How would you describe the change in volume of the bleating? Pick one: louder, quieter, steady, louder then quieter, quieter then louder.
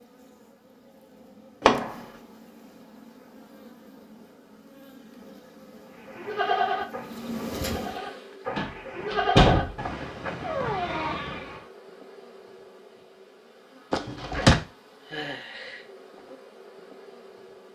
quieter then louder.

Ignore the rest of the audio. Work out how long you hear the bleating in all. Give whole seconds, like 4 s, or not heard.
6 s.